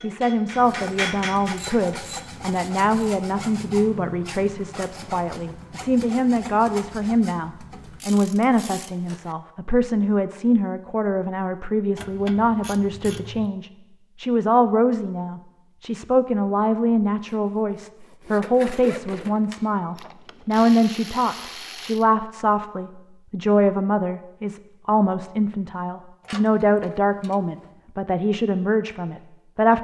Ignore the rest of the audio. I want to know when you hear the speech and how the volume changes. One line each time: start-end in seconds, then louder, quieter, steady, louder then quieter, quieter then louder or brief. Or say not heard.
0.0-29.7 steady.